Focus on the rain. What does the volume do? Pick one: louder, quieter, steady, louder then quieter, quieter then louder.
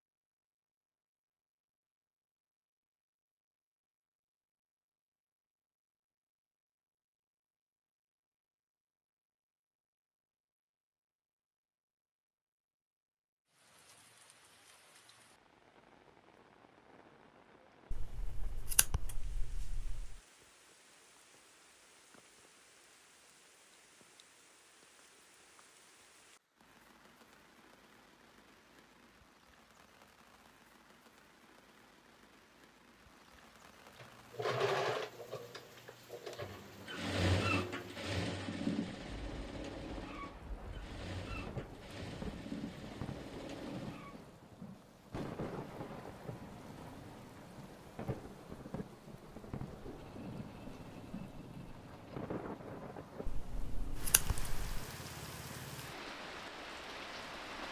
louder.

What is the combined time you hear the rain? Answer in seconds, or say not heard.
44 s.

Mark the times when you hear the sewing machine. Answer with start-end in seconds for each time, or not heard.
34.0-44.3.